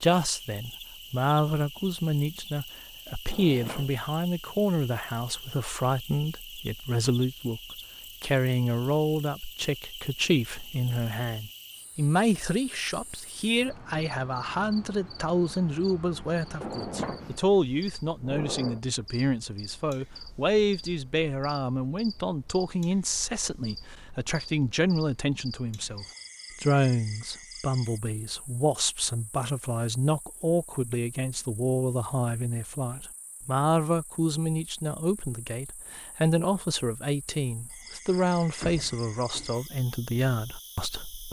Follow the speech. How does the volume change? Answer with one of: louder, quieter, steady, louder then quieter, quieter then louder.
steady.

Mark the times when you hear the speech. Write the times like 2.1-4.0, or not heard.
0.0-7.6, 8.2-41.2.